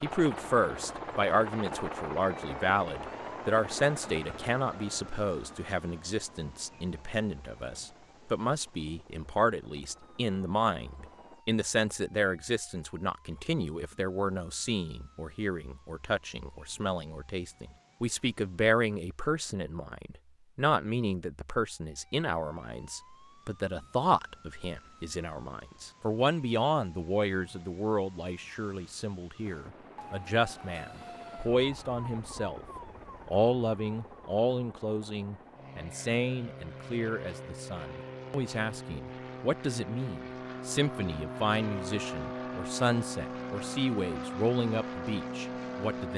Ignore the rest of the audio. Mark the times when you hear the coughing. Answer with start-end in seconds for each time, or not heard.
not heard.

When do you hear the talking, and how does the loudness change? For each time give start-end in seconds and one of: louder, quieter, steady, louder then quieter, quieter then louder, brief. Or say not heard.
0.0-32.6 steady
33.2-46.1 steady.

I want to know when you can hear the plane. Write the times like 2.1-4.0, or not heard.
0.0-11.4, 29.4-46.1.